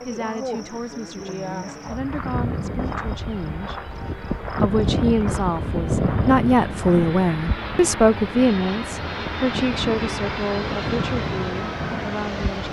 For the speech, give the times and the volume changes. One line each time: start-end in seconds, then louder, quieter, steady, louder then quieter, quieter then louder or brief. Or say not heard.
0.1-12.6 louder then quieter.